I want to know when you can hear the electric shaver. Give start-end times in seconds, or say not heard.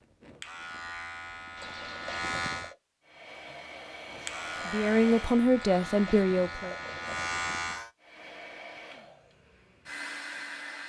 0.0-2.8, 4.0-7.9.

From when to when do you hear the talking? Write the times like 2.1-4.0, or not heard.
4.2-6.8.